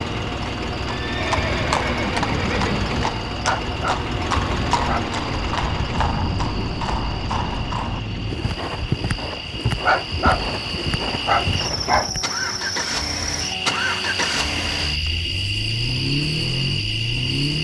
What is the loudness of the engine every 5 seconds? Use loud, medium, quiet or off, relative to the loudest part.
loud, medium, loud, loud.